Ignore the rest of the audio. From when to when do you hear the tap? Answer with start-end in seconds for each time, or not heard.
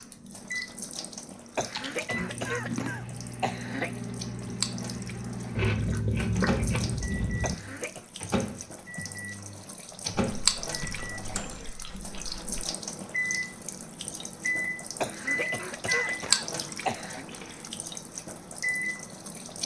0.0-19.6.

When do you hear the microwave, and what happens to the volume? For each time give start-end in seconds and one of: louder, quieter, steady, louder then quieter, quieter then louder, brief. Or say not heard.
0.1-19.6 steady.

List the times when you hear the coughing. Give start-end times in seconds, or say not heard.
1.6-4.0, 7.4-8.1, 15.0-17.2.